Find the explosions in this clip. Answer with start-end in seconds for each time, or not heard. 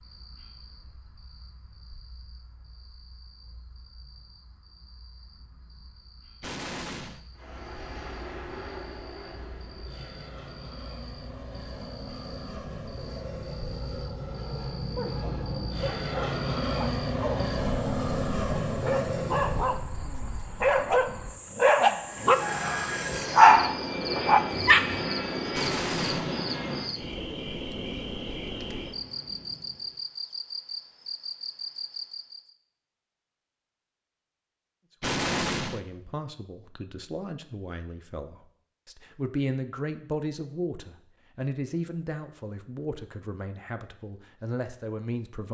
6.4-7.2, 25.5-26.4, 35.0-35.8.